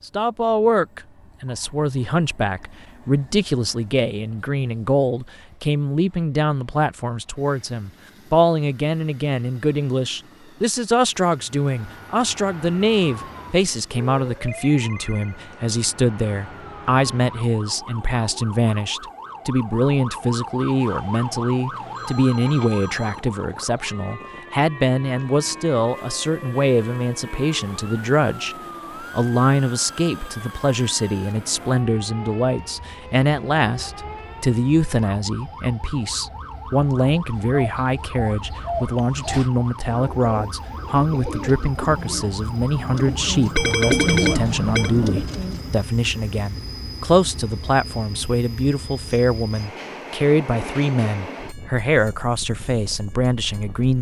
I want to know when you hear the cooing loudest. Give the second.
44 s.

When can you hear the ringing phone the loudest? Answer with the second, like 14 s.
44 s.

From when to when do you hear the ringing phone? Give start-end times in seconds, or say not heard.
14.2-15.4, 20.8-23.2, 43.5-44.9.